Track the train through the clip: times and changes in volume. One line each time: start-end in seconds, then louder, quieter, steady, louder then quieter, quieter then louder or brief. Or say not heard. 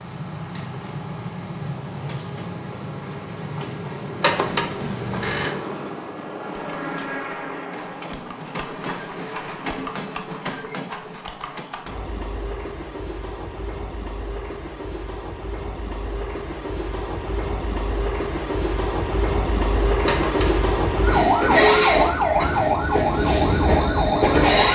0.0-24.7 louder.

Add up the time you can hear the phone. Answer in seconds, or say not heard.
2 s.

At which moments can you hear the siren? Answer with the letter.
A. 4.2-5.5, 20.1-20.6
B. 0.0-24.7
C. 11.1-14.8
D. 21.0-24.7
D.